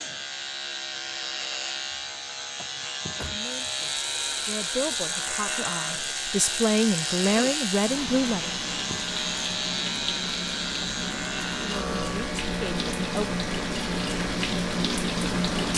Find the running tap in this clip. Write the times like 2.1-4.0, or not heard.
3.6-15.7.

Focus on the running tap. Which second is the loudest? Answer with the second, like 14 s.
15 s.